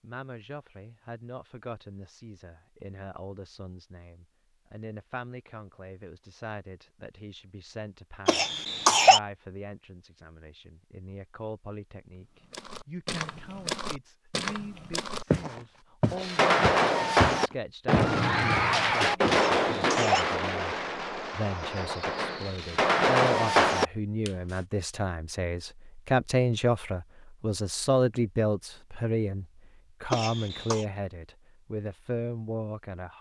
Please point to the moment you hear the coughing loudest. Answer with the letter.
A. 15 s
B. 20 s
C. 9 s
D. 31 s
C.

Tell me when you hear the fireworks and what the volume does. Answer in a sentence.
You can hear the fireworks from 16.2 to 24.3 s, getting quieter then louder.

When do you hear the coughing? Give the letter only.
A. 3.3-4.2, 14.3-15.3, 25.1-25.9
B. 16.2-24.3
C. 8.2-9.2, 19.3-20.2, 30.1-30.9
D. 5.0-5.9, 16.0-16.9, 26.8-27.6
C.